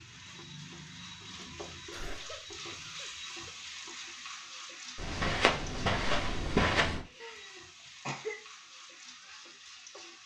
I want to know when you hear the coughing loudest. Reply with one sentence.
The volume of the coughing peaks at 8 seconds.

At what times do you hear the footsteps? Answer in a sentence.
You can hear the footsteps from 5.0 to 7.0 s.